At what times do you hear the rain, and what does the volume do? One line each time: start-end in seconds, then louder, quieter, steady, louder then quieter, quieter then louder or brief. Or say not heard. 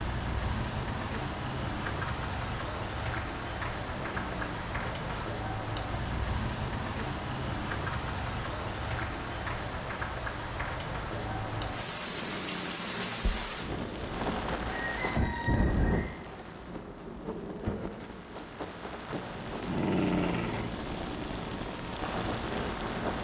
0.0-23.1 steady.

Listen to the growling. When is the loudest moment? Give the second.
20 s.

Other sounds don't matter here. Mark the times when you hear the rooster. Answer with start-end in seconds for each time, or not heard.
14.7-16.1.